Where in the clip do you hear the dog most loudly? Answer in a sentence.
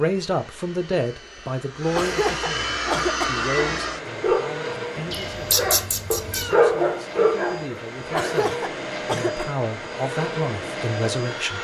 The volume of the dog peaks at 7 seconds.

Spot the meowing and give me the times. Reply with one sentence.
The meowing can be heard from 5.1 to 6.5 s.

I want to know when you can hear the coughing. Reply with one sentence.
The coughing can be heard from 1.9 to 3.4 s and from 8.2 to 9.4 s.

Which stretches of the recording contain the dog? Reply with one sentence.
The dog can be heard from 2.9 to 8.4 s.